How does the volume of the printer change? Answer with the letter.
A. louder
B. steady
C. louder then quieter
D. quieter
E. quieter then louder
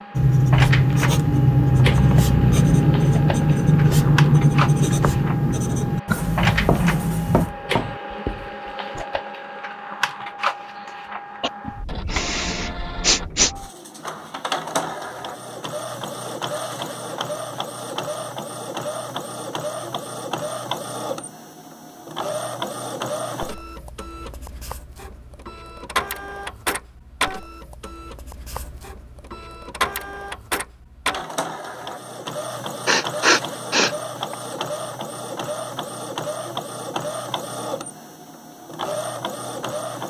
B.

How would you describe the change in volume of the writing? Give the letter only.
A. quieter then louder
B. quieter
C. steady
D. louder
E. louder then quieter
B.